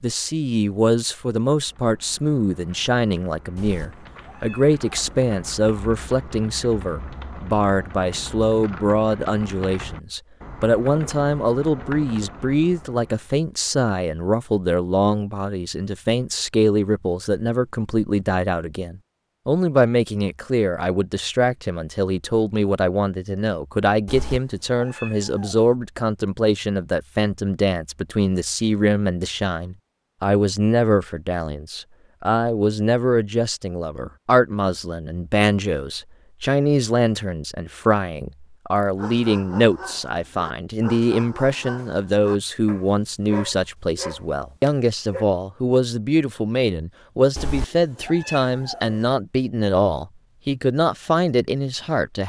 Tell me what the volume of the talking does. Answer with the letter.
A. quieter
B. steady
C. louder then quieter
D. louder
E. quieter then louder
B.